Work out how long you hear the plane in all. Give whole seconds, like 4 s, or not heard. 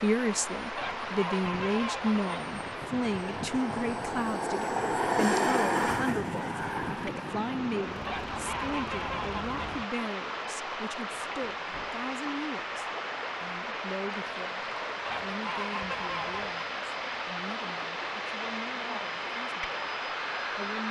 21 s.